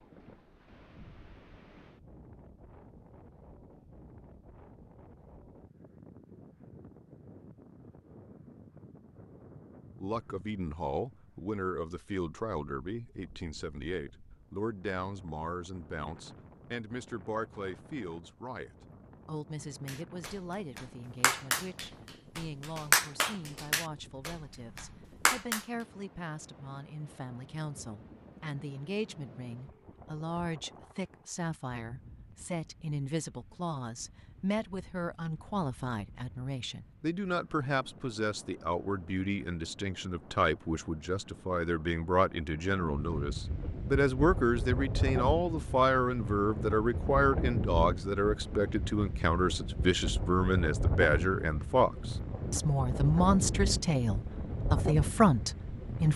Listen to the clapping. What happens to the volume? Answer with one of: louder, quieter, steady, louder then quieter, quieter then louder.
louder then quieter.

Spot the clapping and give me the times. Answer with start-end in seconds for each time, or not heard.
19.9-25.6.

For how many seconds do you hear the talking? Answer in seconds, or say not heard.
46 s.